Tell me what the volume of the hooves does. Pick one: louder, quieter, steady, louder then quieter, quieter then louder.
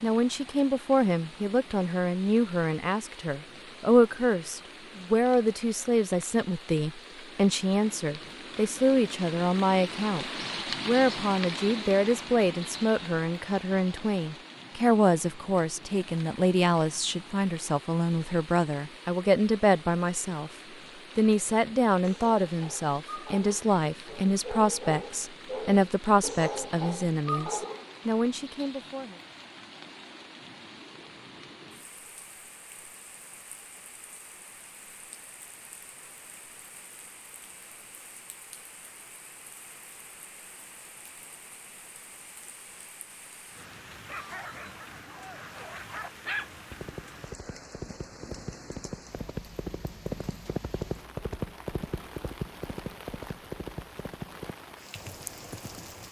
louder then quieter.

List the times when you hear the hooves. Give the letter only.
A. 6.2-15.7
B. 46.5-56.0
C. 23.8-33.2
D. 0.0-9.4
B.